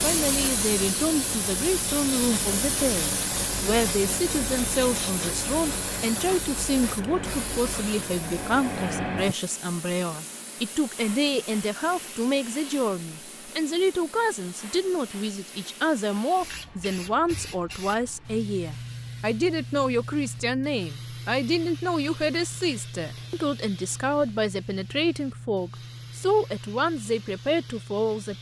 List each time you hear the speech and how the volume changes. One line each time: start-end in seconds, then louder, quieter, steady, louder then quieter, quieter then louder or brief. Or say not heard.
0.0-28.3 steady.